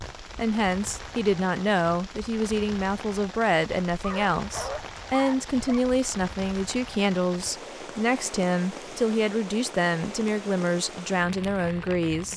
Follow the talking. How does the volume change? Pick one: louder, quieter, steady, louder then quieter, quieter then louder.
steady.